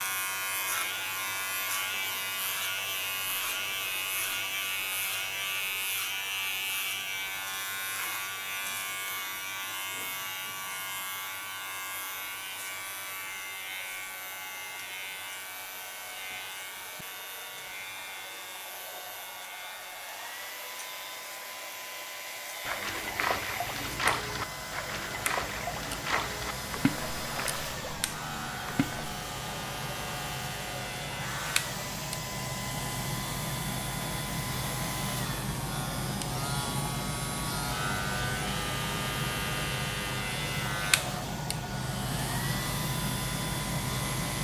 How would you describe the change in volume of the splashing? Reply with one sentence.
The loudness of the splashing goes down.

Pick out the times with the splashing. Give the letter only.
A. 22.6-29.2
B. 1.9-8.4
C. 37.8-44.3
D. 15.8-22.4
A.